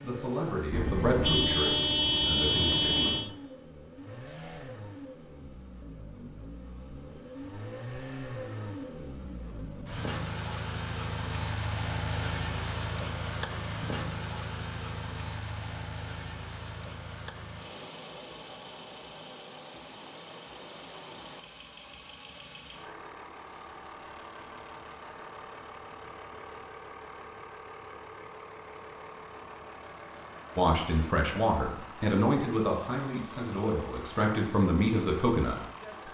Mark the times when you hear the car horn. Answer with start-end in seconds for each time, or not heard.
0.7-3.3.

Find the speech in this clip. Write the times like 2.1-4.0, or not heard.
0.0-3.1, 30.6-36.0.